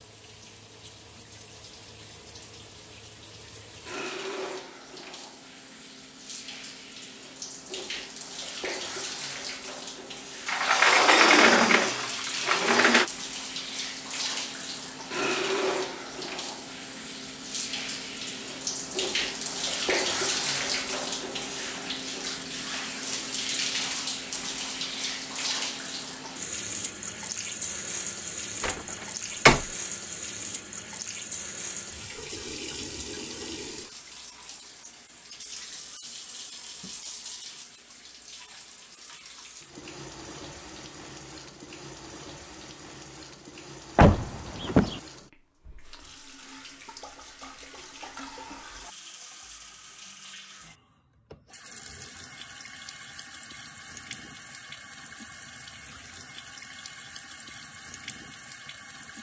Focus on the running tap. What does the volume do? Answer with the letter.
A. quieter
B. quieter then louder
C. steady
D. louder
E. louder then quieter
E.